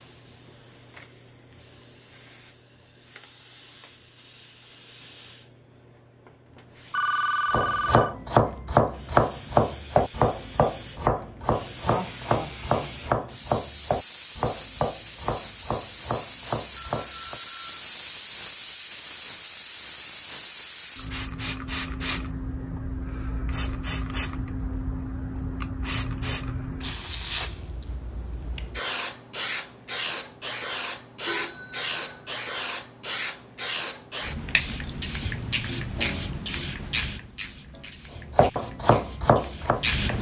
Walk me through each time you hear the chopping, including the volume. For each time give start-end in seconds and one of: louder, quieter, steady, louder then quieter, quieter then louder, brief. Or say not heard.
7.5-17.4 quieter
38.3-40.1 brief.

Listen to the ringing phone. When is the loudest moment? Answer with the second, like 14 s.
7 s.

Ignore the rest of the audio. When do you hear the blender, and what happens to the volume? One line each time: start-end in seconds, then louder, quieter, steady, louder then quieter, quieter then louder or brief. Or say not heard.
not heard.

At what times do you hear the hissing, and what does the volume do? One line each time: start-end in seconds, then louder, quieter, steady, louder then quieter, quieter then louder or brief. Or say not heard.
0.0-40.1 louder.